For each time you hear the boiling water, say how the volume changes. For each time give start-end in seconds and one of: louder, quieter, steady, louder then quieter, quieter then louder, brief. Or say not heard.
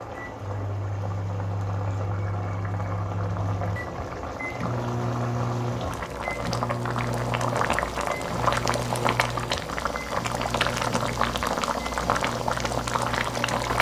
0.0-13.7 louder.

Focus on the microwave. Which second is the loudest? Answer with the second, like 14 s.
5 s.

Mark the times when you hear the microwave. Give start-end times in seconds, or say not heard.
0.0-13.7.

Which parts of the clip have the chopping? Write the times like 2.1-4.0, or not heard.
not heard.